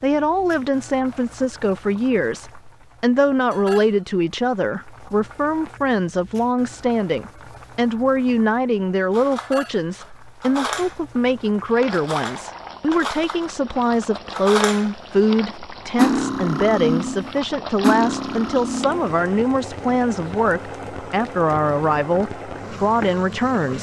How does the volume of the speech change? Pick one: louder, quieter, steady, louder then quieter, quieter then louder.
steady.